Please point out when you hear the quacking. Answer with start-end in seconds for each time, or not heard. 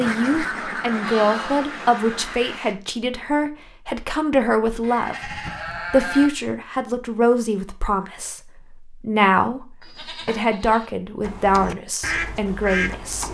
0.0-2.6, 11.2-13.2.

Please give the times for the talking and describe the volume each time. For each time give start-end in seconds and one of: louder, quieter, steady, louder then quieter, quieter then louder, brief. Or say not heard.
0.0-13.2 steady.